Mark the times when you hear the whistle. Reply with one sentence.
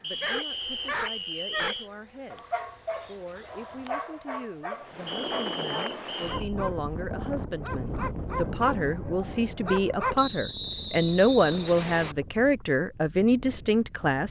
You can hear the whistle from 0.0 to 1.9 s, from 5.0 to 6.4 s and from 10.2 to 12.2 s.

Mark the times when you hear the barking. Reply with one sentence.
The barking can be heard from 0.2 to 10.2 s.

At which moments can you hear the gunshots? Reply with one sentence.
The gunshots can't be heard in this clip.